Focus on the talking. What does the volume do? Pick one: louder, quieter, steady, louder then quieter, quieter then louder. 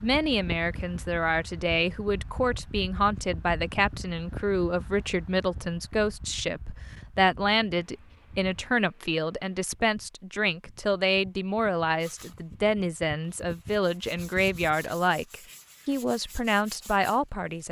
steady.